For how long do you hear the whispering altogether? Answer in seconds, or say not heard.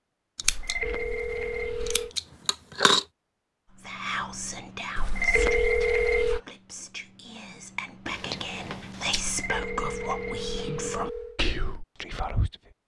9 s.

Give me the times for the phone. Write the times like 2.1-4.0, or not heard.
0.4-2.1, 5.0-6.4, 9.2-11.4.